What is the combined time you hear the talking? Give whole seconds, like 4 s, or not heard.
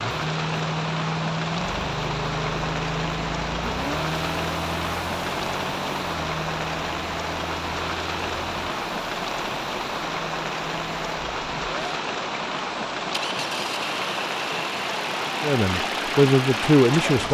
2 s.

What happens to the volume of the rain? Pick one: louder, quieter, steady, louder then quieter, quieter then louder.
steady.